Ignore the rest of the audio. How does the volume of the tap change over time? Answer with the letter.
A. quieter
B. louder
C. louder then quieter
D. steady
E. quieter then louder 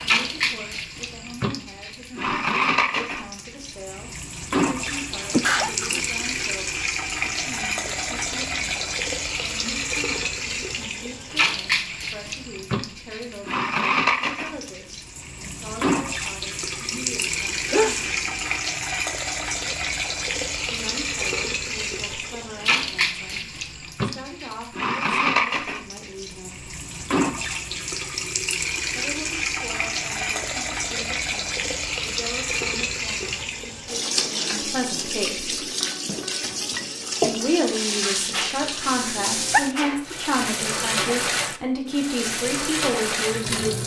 D.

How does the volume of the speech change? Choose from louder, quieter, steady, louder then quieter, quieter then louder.
louder.